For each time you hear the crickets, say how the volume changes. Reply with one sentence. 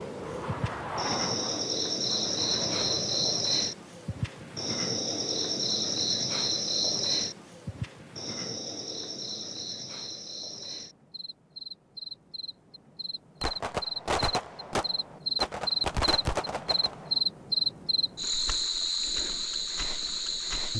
The crickets can be heard from 0.0 to 20.7 s, getting quieter then louder.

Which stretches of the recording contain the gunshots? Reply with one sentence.
You can hear the gunshots from 13.4 to 17.2 s.